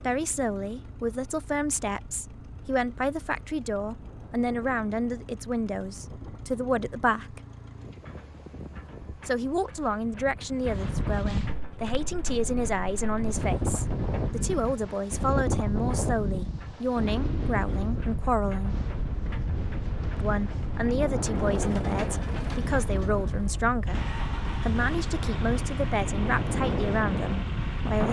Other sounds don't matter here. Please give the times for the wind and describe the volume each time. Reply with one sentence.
The wind can be heard from 0.0 to 28.0 s, getting louder.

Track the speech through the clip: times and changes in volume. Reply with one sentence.
The speech can be heard from 0.0 to 7.4 s, at a steady volume; from 9.2 to 18.9 s, at a steady volume; and from 20.1 to 28.0 s, at a steady volume.